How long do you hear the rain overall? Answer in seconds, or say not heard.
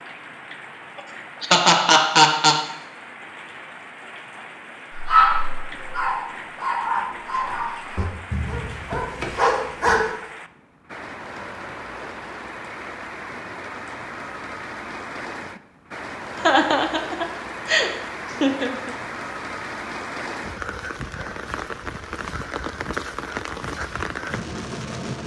25 s.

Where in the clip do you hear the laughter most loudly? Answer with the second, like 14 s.
2 s.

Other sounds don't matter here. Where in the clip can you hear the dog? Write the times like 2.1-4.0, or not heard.
4.9-10.1.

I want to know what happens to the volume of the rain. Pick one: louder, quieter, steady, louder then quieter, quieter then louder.
louder.